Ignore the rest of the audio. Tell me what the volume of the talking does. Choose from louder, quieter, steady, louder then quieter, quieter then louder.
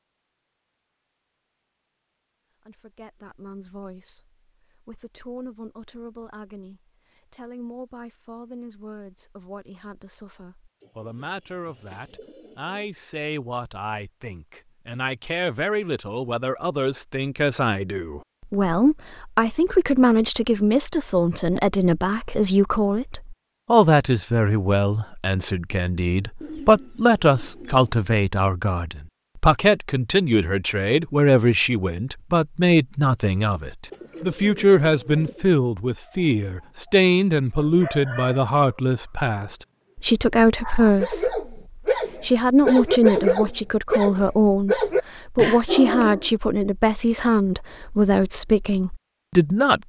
louder.